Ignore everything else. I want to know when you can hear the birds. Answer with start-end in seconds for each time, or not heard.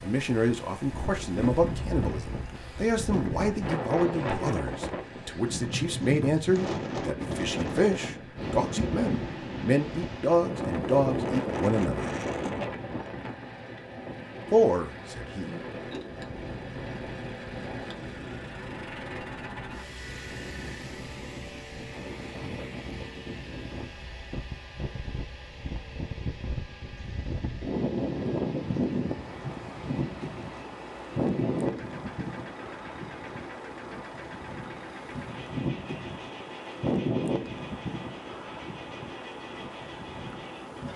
not heard.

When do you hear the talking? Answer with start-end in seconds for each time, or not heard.
0.0-12.1, 14.5-15.6.